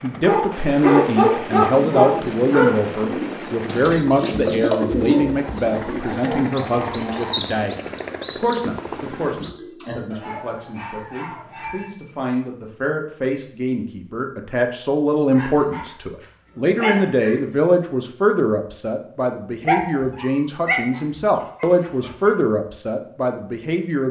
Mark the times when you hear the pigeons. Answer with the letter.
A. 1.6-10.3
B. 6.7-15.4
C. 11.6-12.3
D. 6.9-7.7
A.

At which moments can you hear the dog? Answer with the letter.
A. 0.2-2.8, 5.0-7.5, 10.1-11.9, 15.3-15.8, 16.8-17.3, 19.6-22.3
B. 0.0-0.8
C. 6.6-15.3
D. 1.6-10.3
A.